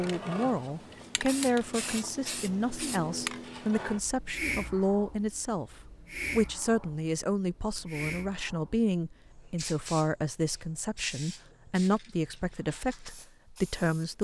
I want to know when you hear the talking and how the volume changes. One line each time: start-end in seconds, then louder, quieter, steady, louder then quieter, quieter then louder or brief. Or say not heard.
0.0-14.1 steady.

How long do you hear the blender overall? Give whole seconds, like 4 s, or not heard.
not heard.